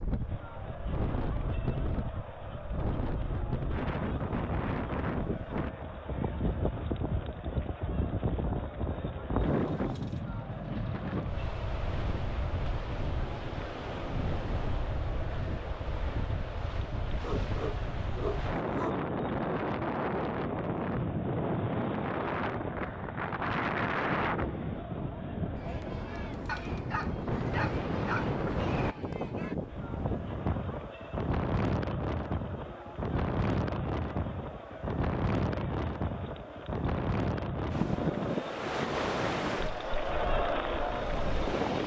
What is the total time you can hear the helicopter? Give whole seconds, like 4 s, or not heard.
3 s.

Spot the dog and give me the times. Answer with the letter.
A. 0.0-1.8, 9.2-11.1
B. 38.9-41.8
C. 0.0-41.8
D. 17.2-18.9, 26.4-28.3
D.